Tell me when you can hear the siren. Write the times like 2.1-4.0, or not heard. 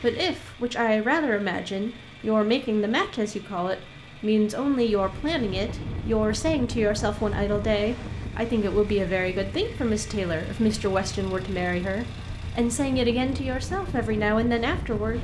not heard.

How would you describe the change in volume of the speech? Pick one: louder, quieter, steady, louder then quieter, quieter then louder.
steady.